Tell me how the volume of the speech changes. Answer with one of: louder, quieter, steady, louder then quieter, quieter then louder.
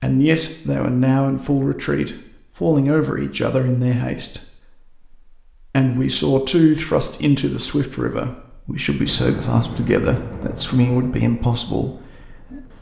steady.